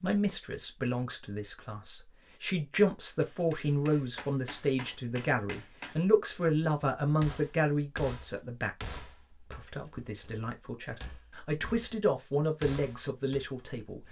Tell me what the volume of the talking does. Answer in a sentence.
The loudness of the talking goes down, then up.